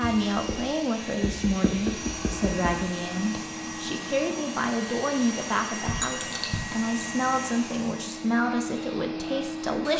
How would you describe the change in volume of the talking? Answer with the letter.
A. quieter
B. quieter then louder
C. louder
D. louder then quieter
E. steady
E.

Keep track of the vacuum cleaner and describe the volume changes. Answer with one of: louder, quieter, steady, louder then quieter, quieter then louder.
steady.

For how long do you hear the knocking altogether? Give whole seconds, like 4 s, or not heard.
3 s.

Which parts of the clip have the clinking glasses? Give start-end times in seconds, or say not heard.
6.0-7.0.